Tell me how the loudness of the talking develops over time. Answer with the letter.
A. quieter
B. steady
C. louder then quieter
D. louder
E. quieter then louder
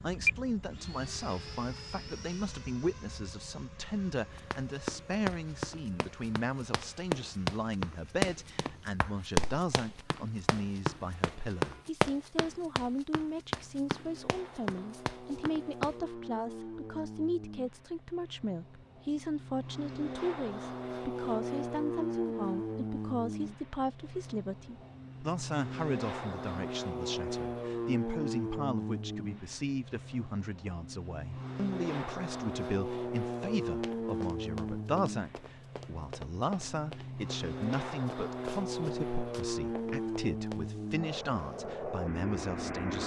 B.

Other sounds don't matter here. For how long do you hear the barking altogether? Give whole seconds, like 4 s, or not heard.
not heard.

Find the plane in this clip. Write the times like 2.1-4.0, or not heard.
0.0-43.0.